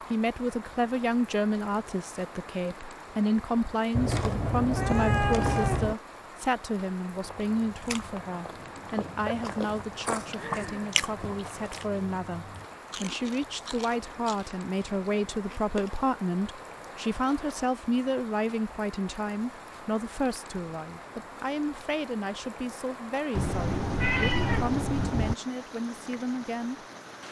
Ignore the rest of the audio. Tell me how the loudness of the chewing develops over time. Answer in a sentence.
The loudness of the chewing goes up, then down.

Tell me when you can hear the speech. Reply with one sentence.
You can hear the speech from 0.1 to 26.9 s.